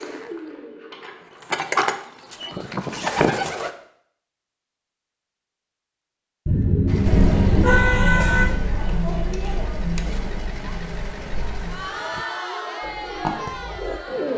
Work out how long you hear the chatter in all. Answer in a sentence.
The chatter can be heard for 7 seconds in total.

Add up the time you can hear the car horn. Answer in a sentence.
The car horn can be heard for 2 seconds in total.